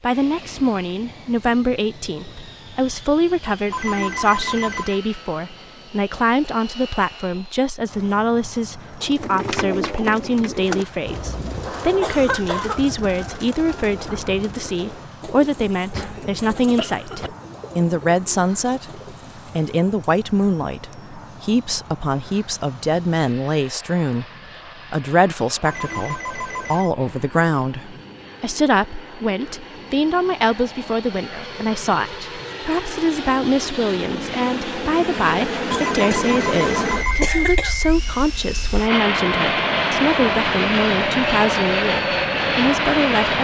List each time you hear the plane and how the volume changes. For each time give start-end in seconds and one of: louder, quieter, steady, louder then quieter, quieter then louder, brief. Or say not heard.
0.0-43.4 louder.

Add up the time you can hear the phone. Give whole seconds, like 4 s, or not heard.
4 s.